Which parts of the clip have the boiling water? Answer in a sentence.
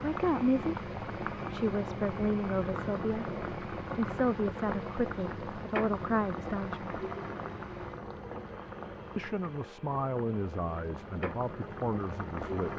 You can hear the boiling water from 0.0 to 12.7 s.